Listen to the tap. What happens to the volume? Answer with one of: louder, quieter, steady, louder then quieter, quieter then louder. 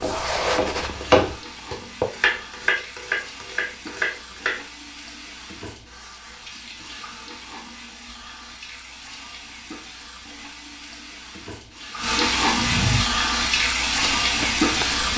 louder.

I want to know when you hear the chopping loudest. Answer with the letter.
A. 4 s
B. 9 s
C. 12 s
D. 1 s
D.